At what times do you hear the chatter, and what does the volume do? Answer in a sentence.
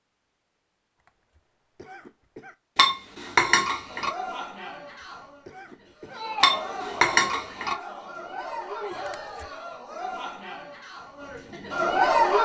You can hear the chatter from 3.9 to 12.4 s, getting louder.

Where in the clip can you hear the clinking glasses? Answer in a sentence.
You can hear the clinking glasses from 2.8 to 4.1 s and from 6.4 to 7.8 s.